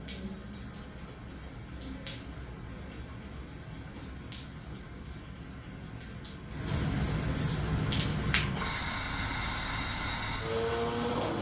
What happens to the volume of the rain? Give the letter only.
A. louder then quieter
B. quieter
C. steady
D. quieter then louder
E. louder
A.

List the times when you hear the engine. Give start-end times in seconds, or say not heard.
7.8-11.3.